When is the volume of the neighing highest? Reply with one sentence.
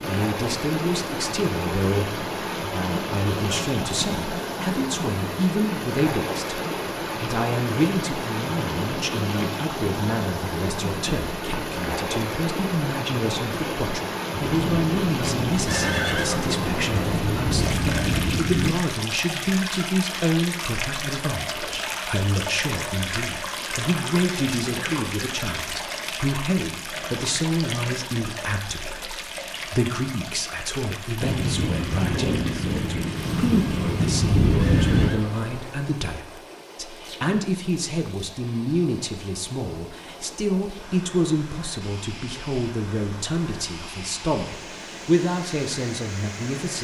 The volume of the neighing peaks at 16 seconds.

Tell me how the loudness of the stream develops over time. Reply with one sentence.
The loudness of the stream goes down.